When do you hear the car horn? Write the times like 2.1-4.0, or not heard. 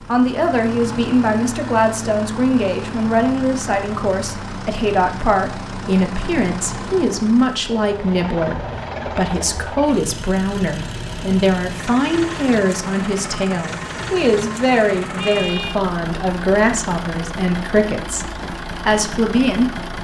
15.2-15.8.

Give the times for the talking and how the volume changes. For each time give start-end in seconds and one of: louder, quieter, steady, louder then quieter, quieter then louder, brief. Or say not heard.
0.0-19.8 steady.